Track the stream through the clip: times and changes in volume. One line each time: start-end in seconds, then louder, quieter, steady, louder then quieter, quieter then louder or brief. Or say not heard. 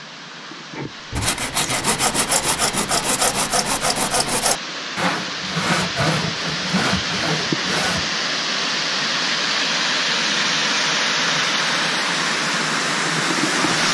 0.0-13.8 louder.